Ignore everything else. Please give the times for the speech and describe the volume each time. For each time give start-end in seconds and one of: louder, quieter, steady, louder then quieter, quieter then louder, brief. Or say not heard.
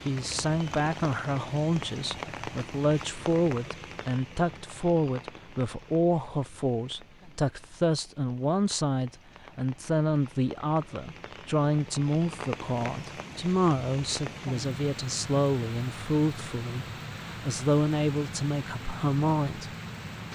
0.1-19.7 steady.